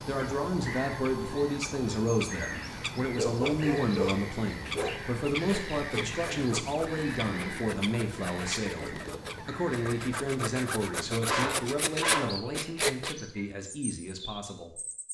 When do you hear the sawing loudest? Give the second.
13 s.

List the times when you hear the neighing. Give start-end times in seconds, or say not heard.
not heard.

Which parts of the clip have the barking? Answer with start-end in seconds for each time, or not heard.
3.1-4.9, 11.2-12.3.